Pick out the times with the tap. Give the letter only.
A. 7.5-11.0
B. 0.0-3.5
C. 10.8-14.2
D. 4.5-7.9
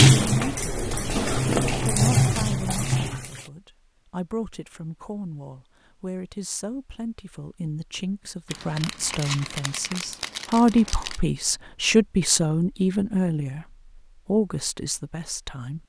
B.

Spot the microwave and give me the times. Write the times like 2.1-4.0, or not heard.
not heard.